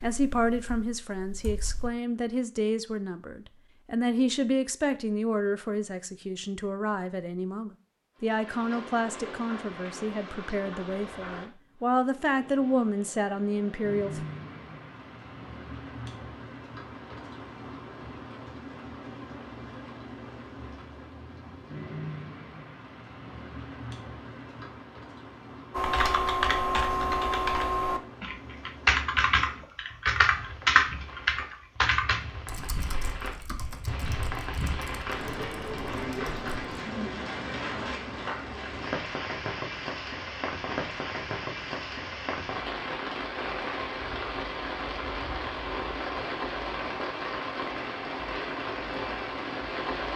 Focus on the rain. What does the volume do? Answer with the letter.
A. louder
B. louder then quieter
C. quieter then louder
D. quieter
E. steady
A.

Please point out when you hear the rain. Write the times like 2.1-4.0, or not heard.
8.2-50.1.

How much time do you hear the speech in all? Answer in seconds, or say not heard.
14 s.